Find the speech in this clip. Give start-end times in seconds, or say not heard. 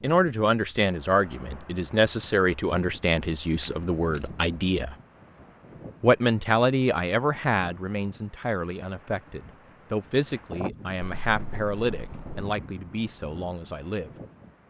0.0-5.0, 6.0-14.1.